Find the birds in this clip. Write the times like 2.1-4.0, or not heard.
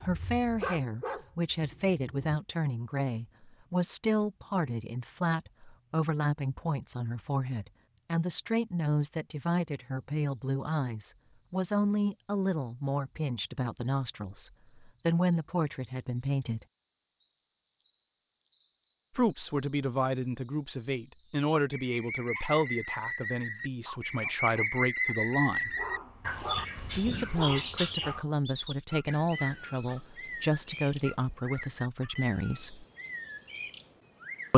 9.9-34.5.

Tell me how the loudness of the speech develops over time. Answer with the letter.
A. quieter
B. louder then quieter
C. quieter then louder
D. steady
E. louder
D.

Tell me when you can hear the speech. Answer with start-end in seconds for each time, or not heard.
0.0-16.6, 19.1-25.7, 26.9-32.9.